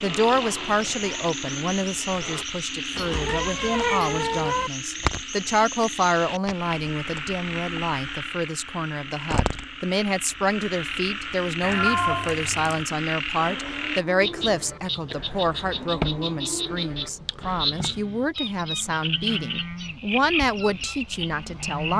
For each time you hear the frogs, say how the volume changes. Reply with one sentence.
You can hear the frogs from 0.0 to 21.9 s, at a steady volume.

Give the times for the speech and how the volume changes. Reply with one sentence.
You can hear the speech from 0.0 to 21.9 s, at a steady volume.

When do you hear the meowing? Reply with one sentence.
The meowing can be heard from 3.0 to 4.7 s and from 11.6 to 12.8 s.